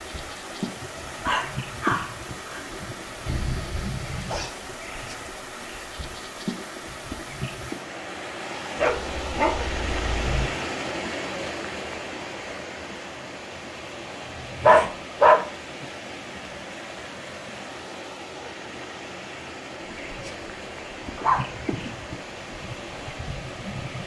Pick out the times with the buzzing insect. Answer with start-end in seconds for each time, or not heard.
0.0-7.8, 19.9-24.0.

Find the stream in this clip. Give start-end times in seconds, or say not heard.
0.0-24.0.